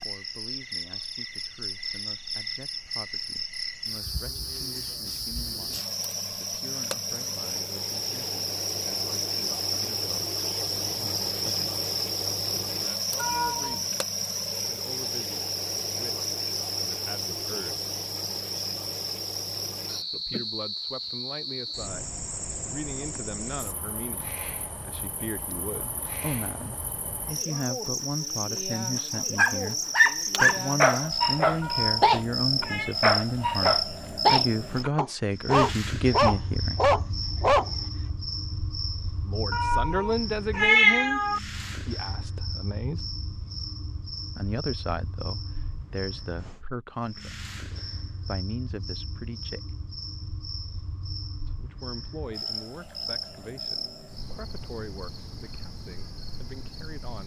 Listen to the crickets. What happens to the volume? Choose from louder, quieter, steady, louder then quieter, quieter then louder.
quieter.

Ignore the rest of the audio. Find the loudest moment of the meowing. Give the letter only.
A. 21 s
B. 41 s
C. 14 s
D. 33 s
B.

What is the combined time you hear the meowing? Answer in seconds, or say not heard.
4 s.